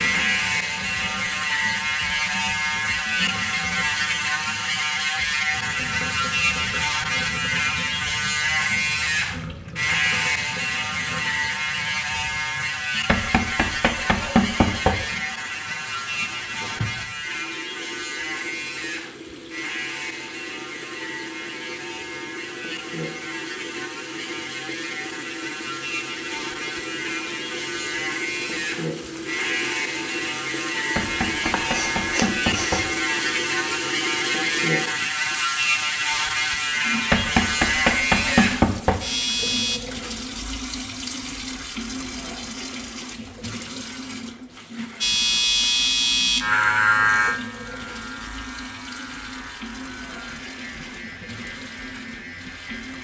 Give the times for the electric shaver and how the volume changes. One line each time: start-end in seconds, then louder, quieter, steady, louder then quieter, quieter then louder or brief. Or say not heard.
0.0-39.8 quieter then louder
45.0-53.0 quieter.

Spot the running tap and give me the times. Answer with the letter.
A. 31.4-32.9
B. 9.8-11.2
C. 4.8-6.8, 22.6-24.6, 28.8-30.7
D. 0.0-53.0
D.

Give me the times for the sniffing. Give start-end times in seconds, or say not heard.
31.4-32.9.